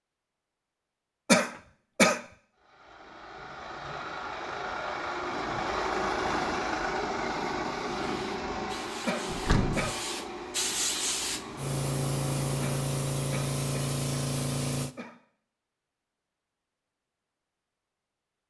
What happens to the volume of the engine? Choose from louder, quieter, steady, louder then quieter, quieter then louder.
louder then quieter.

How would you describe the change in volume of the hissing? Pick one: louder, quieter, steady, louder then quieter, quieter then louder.
louder.